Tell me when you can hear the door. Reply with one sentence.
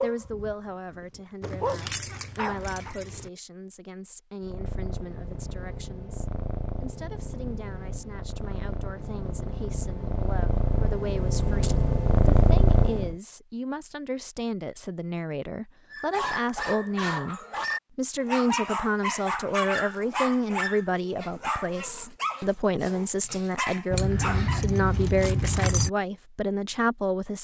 You can't hear the door here.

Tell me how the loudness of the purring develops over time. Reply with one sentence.
The volume of the purring goes up.